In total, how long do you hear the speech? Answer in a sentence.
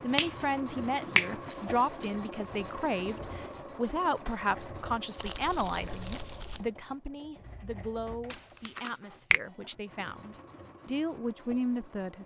The speech can be heard for 12 seconds in total.